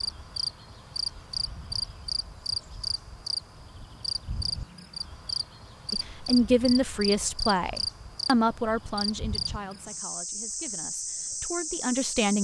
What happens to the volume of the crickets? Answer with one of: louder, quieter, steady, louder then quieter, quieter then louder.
steady.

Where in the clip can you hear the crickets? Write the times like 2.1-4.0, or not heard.
0.0-12.4.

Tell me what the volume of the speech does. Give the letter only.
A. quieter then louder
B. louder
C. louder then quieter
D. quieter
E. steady
A.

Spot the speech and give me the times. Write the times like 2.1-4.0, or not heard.
5.9-12.4.